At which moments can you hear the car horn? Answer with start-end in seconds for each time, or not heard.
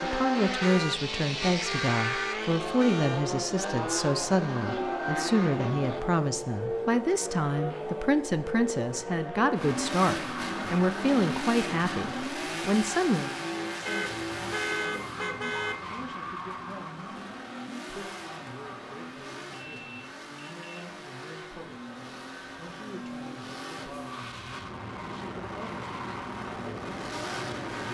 0.6-3.2, 13.8-15.8, 19.6-20.9.